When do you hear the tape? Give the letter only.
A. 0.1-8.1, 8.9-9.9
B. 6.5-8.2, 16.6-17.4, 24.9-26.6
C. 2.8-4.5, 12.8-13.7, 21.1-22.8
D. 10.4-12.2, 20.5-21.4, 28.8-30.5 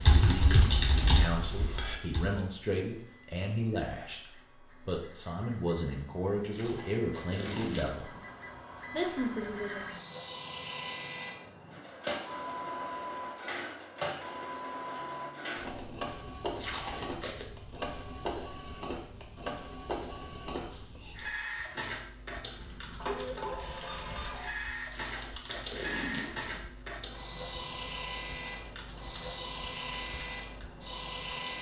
B.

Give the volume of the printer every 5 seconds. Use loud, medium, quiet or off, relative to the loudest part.
quiet, medium, loud, loud, loud, loud, loud.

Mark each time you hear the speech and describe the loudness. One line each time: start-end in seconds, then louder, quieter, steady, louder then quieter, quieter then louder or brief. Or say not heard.
0.1-8.1 steady
8.9-9.9 brief.